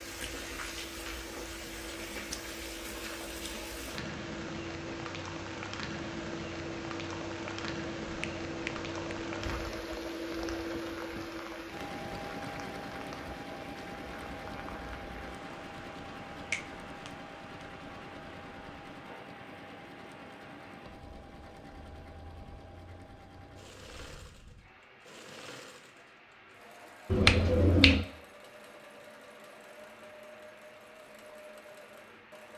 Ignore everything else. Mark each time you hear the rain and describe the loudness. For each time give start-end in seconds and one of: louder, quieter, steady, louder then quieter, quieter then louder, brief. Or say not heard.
0.0-32.5 quieter.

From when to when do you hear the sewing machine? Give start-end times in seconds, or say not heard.
0.0-32.5.